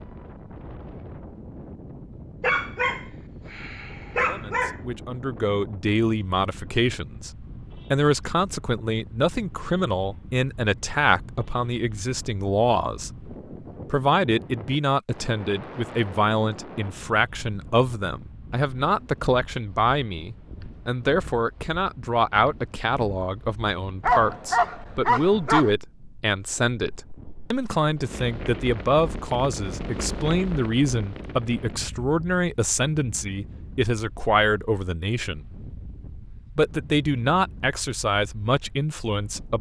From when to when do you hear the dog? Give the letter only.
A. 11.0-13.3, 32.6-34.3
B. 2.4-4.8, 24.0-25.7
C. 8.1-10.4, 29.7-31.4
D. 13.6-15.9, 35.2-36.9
B.